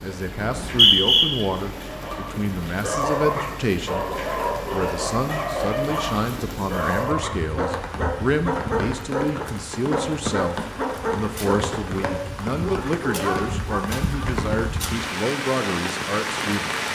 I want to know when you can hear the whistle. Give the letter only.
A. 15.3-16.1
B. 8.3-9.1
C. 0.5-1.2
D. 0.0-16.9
C.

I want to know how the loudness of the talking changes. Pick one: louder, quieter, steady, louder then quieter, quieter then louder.
steady.